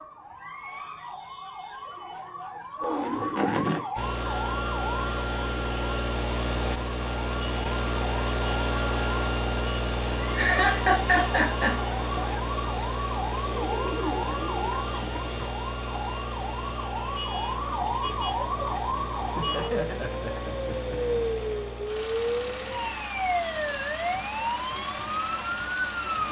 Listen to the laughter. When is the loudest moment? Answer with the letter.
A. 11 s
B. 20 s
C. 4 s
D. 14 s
A.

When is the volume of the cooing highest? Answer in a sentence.
The loudest moment of the cooing is at 14 seconds.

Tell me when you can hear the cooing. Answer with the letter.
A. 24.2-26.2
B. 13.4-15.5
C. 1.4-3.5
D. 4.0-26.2
B.